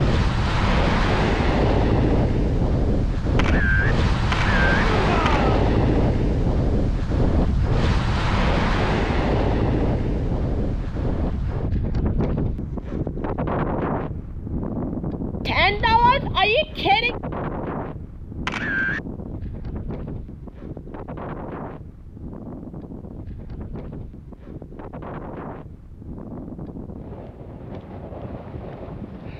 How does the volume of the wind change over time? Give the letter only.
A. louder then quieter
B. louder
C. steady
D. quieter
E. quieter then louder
D.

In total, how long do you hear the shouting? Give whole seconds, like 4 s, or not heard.
2 s.